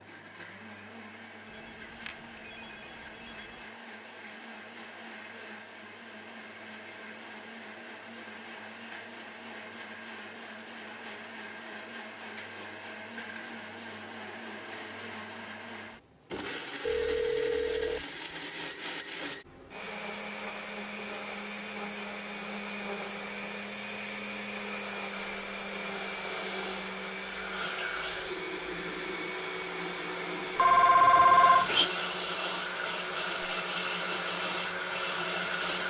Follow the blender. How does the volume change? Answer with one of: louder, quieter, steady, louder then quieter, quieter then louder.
louder.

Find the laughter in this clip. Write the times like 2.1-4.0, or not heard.
not heard.